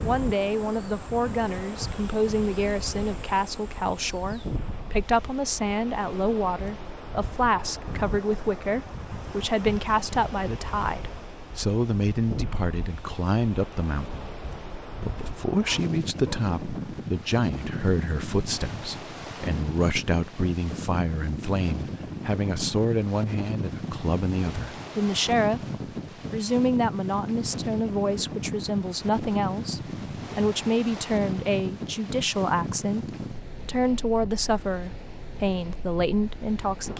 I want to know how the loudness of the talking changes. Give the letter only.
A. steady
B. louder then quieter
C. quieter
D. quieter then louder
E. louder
A.